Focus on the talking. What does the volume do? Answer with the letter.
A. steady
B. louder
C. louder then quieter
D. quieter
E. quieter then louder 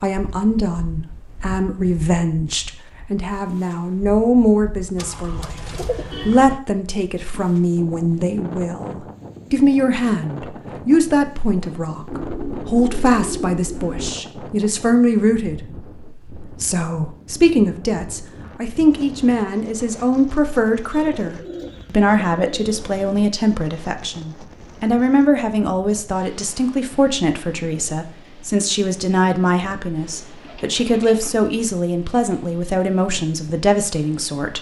A.